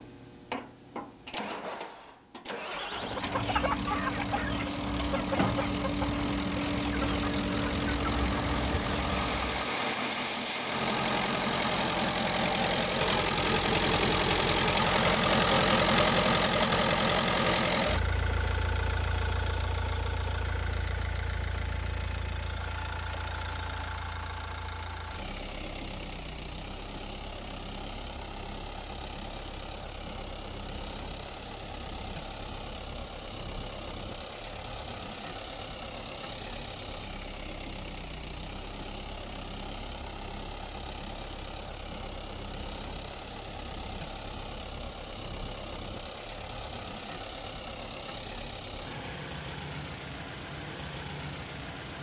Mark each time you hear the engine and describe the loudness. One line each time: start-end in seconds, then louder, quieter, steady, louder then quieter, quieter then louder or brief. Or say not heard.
0.0-51.9 louder then quieter.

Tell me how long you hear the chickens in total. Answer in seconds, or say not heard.
7 s.